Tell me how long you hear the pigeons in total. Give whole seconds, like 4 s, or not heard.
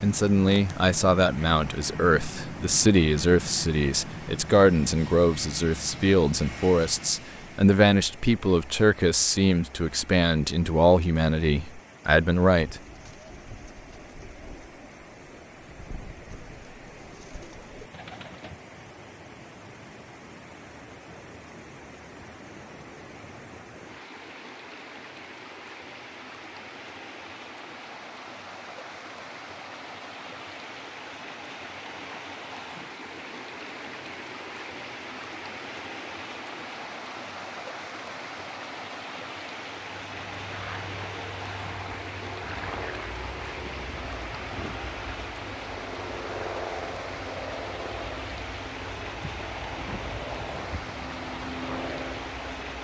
6 s.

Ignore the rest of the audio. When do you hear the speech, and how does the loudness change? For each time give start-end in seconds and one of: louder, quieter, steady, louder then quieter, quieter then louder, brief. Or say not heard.
0.0-12.8 steady.